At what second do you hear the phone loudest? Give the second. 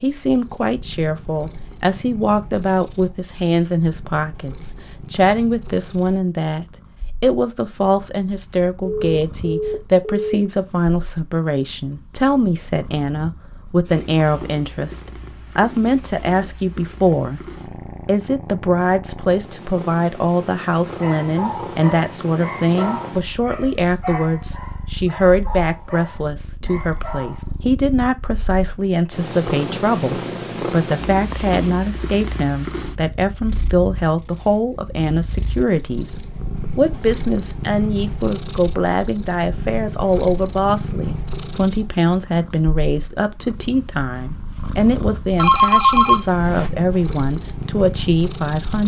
46 s.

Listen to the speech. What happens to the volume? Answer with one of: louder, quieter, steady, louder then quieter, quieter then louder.
steady.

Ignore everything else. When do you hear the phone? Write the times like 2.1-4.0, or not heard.
8.8-10.3, 45.4-46.7.